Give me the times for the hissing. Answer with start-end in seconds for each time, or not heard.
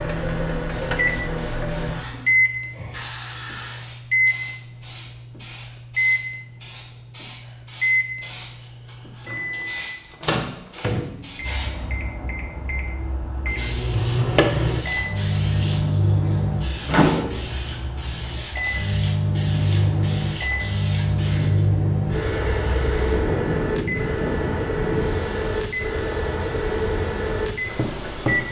0.2-28.4.